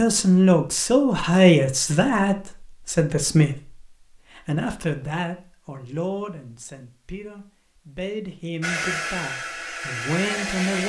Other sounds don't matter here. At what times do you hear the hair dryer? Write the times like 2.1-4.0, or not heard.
8.6-10.8.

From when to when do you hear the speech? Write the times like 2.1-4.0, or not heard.
0.0-10.8.